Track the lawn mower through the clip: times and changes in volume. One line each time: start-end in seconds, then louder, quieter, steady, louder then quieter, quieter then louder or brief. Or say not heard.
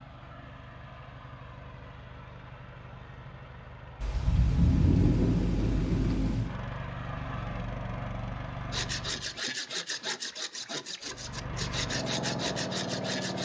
0.0-9.4 louder
11.0-13.4 brief.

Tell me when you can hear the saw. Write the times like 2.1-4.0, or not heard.
8.7-13.4.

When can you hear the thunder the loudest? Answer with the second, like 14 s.
5 s.